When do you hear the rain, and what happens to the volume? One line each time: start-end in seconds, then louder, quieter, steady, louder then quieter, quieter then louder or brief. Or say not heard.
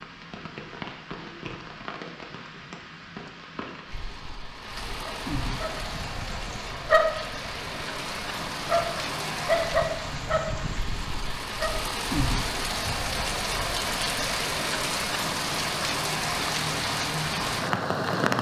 0.0-18.3 louder.